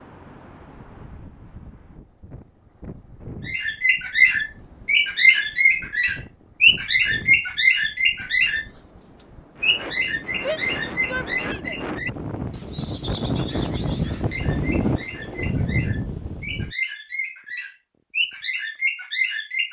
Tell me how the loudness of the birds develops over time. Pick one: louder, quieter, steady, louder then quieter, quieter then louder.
quieter then louder.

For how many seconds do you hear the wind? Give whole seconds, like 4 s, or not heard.
17 s.